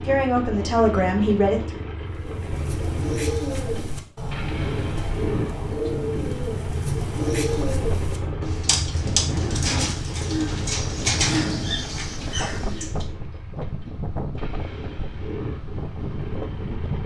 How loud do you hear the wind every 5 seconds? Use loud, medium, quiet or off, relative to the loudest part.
off, loud, loud, loud.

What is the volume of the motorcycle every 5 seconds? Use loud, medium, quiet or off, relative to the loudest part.
loud, loud, medium, loud.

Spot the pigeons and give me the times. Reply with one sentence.
The pigeons can be heard from 2.1 to 13.1 s.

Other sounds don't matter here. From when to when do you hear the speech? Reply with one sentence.
You can hear the speech from 0.0 to 1.8 s.